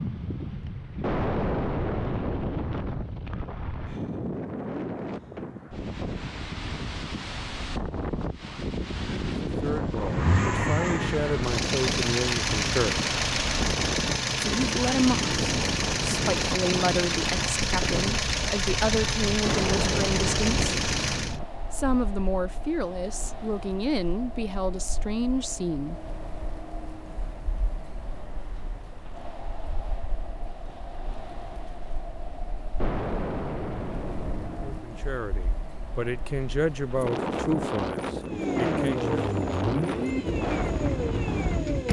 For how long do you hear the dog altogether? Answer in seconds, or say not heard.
not heard.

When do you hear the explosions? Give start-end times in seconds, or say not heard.
1.0-3.0, 19.4-21.4, 32.8-34.8.